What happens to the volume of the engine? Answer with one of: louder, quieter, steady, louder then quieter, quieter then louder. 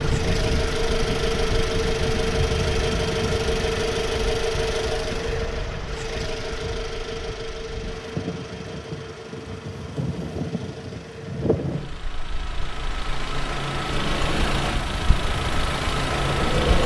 quieter then louder.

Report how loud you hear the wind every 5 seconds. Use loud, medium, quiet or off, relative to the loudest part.
loud, medium, loud, loud.